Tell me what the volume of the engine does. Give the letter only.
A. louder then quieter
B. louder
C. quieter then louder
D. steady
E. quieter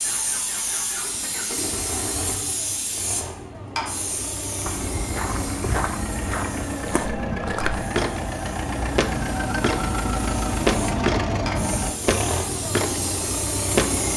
B.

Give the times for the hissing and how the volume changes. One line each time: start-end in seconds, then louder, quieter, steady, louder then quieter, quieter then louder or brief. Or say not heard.
0.0-14.1 quieter then louder.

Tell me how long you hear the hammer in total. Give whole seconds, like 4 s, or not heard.
not heard.